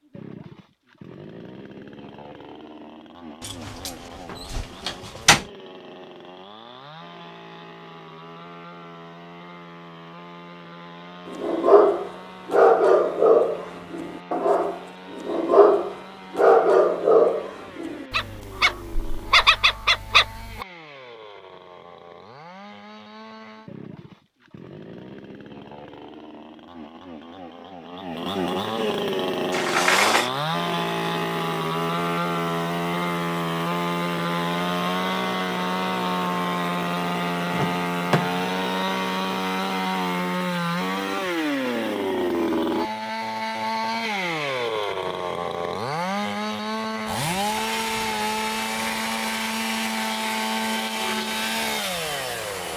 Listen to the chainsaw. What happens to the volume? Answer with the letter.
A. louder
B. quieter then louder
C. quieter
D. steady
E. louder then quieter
A.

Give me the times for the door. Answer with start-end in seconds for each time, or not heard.
3.4-5.5, 29.5-30.3, 37.5-38.5.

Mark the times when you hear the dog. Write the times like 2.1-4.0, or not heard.
11.3-20.6.